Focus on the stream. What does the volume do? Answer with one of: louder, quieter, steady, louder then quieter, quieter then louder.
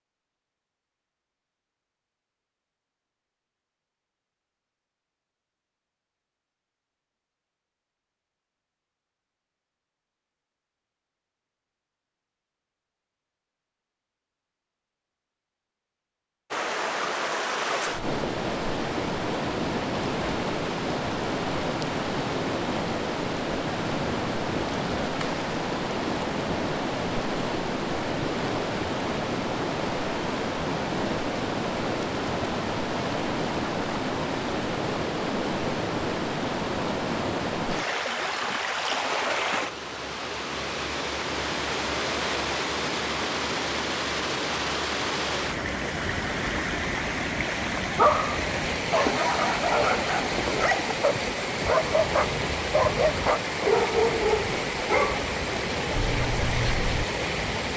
steady.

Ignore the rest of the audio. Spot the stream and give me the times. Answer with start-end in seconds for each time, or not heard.
16.5-57.7.